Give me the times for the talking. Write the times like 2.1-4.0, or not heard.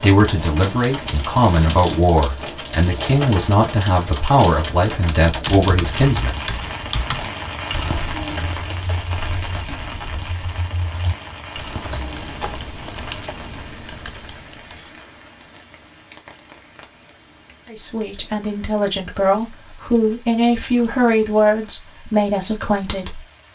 0.0-6.4, 17.7-23.2.